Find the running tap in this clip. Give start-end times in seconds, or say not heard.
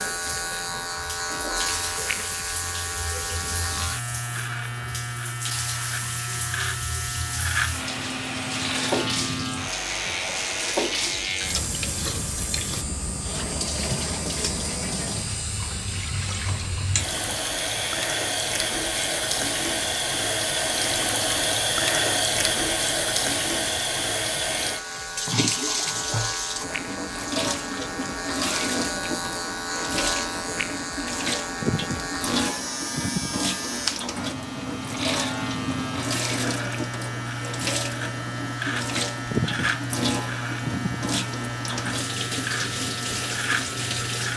0.0-44.3.